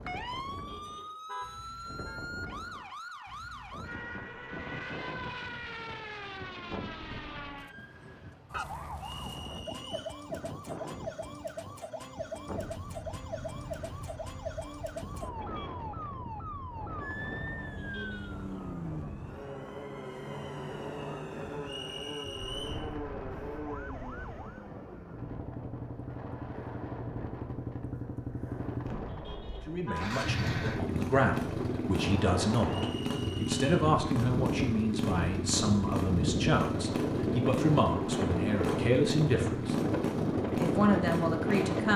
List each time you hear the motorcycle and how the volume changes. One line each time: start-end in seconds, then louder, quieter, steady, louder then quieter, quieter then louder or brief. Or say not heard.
12.5-41.9 louder.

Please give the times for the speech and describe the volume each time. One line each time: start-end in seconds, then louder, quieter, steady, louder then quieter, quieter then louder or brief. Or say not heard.
29.6-41.9 steady.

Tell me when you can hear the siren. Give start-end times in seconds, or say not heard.
0.0-24.8.